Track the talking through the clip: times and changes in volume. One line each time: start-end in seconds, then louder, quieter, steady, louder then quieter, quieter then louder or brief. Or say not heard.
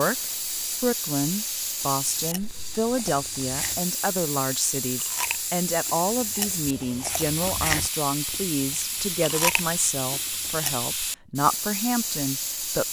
0.0-12.8 steady.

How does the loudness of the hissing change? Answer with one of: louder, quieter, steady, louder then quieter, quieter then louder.
steady.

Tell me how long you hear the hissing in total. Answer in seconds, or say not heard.
13 s.